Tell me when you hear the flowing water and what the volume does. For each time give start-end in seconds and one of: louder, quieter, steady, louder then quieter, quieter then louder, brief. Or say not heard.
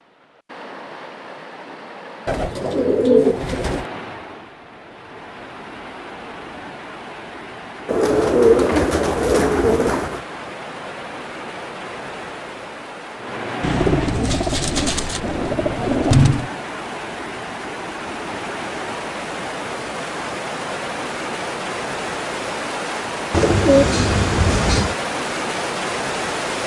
0.0-26.6 louder.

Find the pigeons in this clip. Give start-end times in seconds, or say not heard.
2.2-3.9, 7.8-10.2, 13.6-16.5, 23.3-24.9.